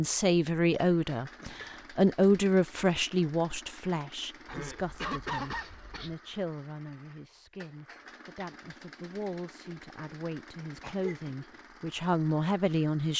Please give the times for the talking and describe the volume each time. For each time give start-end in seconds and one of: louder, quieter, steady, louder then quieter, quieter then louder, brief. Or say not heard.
0.0-13.1 quieter then louder.